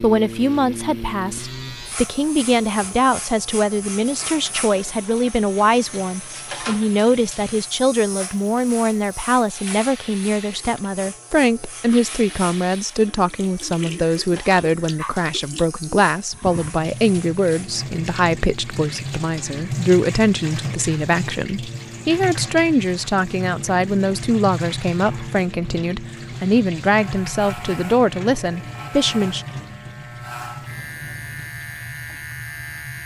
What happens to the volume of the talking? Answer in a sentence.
The loudness of the talking stays about the same.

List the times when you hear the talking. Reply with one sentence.
You can hear the talking from 0.0 to 29.4 s.